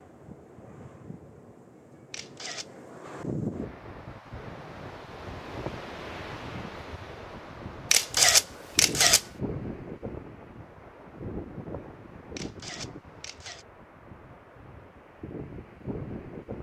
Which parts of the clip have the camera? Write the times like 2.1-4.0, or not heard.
2.1-2.7, 7.9-9.2, 12.3-13.7.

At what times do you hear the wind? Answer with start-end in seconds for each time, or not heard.
0.0-16.5.